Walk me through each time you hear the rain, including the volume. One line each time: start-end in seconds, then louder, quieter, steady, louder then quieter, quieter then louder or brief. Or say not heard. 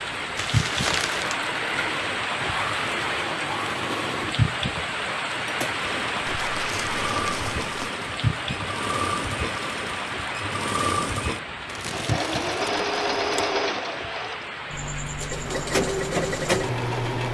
0.0-17.3 quieter.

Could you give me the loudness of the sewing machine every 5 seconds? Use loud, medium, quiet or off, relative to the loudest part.
medium, medium, loud, loud.